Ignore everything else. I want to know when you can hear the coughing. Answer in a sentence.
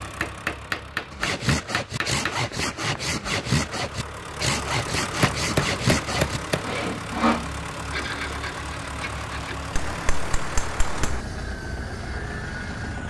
The coughing can't be heard in this clip.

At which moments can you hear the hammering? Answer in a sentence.
The hammering can be heard from 0.2 to 2.4 s, from 5.0 to 6.8 s and from 9.8 to 11.2 s.